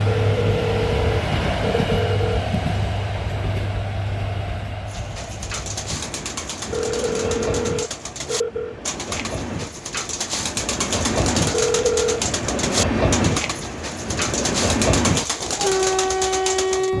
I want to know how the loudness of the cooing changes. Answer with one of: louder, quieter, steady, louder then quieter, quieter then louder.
louder.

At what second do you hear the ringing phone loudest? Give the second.
12 s.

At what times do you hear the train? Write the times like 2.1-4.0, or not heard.
0.0-16.9.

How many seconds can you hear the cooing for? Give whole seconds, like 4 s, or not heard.
12 s.